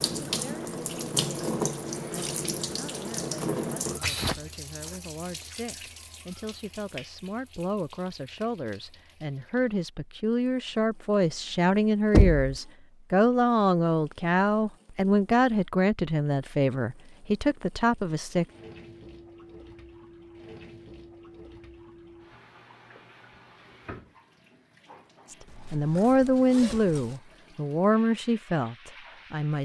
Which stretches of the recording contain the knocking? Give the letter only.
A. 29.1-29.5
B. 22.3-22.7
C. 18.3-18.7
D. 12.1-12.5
D.